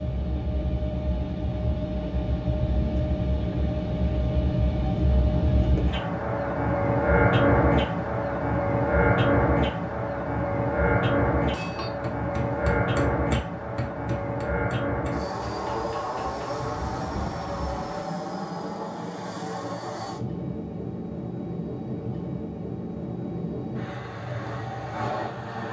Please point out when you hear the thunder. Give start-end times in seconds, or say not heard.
15.7-18.1.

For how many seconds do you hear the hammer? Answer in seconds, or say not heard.
5 s.